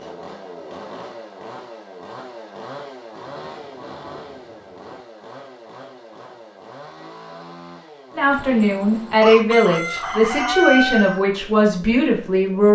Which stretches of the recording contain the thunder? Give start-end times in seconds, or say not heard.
3.3-5.0.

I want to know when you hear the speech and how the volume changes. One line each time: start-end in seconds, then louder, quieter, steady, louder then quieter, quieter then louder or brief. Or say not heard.
8.2-12.6 steady.